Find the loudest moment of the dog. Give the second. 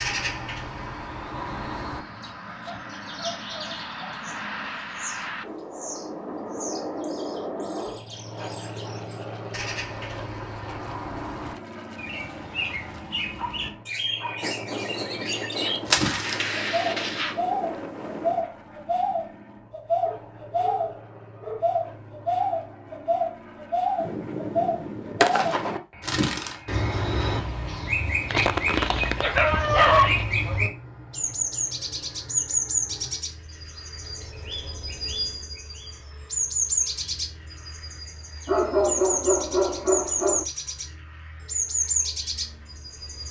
30 s.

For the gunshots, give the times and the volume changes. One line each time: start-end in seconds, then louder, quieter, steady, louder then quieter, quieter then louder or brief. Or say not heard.
14.4-18.4 louder then quieter
23.9-25.8 brief.